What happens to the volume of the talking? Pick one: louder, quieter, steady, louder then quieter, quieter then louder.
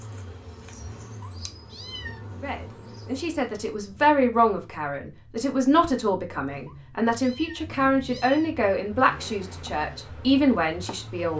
steady.